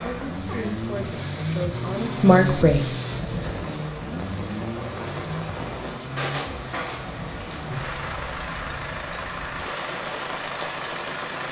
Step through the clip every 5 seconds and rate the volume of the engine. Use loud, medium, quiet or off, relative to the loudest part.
loud, medium, medium.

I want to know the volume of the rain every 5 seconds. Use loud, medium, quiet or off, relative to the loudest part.
medium, loud, loud.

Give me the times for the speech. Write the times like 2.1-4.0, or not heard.
0.0-3.0.